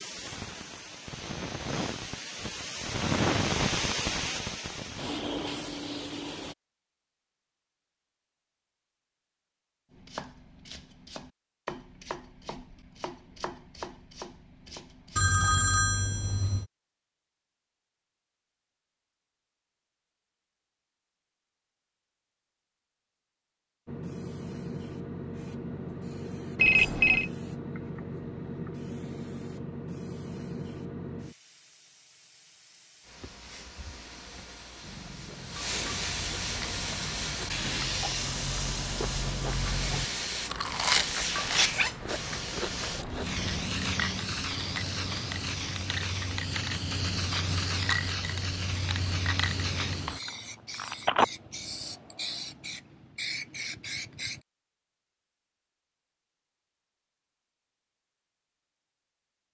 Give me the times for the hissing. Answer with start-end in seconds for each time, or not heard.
0.0-6.5, 23.9-54.4.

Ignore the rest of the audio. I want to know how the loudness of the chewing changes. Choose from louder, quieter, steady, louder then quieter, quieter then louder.
louder then quieter.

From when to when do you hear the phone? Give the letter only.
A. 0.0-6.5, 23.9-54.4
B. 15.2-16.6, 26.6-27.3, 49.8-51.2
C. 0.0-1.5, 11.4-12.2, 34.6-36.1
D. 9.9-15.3
B.